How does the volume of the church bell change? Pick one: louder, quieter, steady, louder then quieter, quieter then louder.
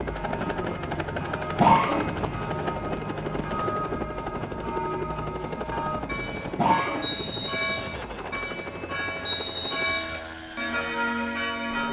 louder.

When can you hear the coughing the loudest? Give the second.
2 s.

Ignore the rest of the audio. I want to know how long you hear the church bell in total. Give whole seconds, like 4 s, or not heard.
12 s.